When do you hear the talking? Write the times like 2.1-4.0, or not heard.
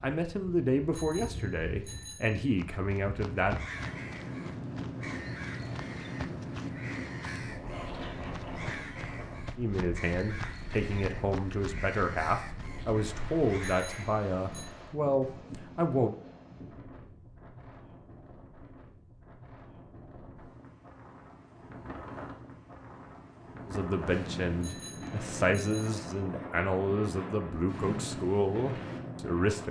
0.0-3.5, 9.6-16.1, 23.6-29.6.